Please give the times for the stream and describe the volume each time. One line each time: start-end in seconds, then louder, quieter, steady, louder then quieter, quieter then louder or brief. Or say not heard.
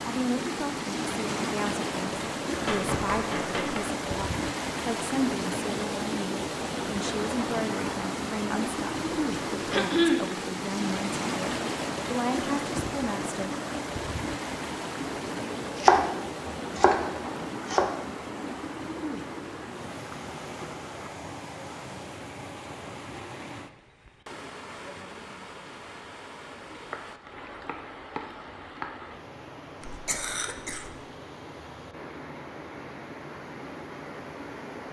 0.0-34.8 quieter.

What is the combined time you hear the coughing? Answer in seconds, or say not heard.
2 s.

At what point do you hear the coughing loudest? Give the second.
10 s.